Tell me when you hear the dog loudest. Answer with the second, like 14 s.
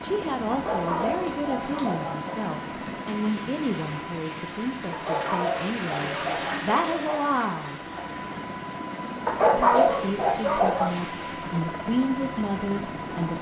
10 s.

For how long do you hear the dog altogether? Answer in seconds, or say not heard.
6 s.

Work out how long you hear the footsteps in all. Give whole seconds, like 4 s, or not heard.
not heard.